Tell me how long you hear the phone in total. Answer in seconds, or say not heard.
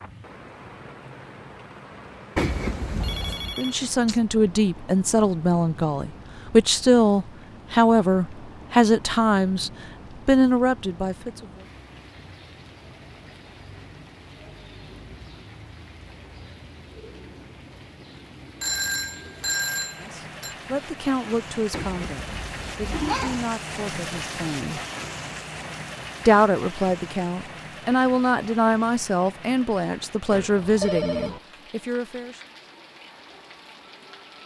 4 s.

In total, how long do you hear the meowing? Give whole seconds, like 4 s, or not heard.
3 s.